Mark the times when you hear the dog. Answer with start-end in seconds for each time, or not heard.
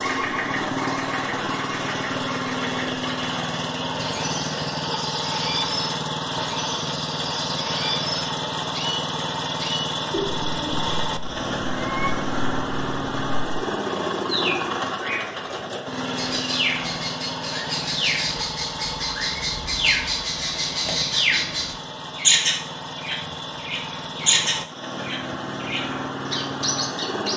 not heard.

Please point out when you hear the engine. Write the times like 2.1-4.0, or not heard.
0.0-27.3.